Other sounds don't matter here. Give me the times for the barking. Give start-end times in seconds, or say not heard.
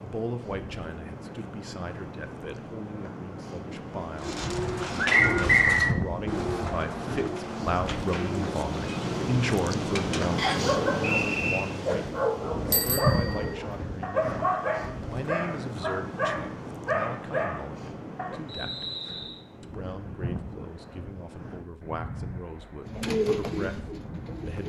10.5-18.4.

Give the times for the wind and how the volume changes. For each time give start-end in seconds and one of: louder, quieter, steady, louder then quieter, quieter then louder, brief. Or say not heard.
0.0-24.6 louder then quieter.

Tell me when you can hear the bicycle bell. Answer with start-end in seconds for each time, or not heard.
12.7-13.6.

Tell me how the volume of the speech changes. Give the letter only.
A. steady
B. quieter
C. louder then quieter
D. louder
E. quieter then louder
C.